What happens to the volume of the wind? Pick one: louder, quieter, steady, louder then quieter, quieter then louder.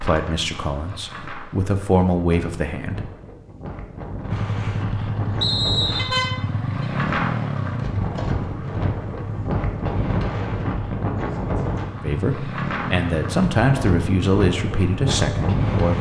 louder.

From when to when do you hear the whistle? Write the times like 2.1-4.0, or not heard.
5.4-6.2.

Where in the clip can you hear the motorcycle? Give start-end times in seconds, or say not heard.
4.3-15.9.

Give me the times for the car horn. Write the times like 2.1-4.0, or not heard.
6.0-6.8.